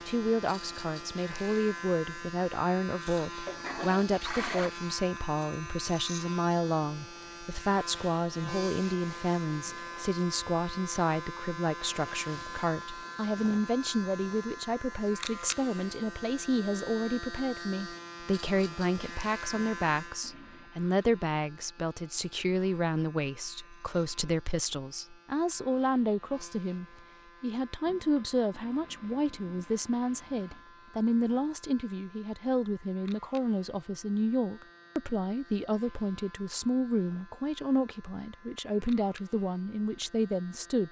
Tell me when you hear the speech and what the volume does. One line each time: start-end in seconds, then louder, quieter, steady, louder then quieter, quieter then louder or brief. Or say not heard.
0.1-40.8 steady.